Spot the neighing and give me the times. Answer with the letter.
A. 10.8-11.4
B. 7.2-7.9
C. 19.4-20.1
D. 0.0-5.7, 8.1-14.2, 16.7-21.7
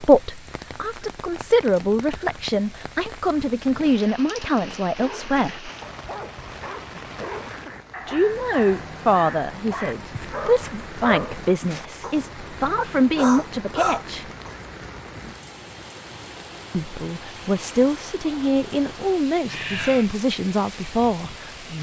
C.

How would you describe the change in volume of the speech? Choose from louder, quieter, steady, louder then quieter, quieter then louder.
steady.